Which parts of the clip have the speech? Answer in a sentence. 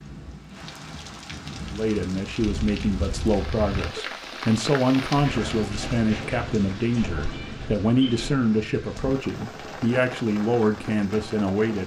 You can hear the speech from 1.7 to 11.8 s.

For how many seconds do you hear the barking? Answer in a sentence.
You can't hear the barking here.